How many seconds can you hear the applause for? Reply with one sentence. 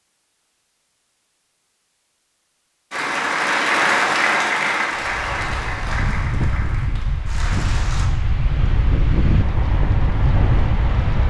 You can hear the applause for 5 seconds altogether.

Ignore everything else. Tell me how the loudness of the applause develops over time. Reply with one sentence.
The loudness of the applause goes down.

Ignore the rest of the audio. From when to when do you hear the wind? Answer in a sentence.
You can hear the wind from 5.0 to 11.2 s.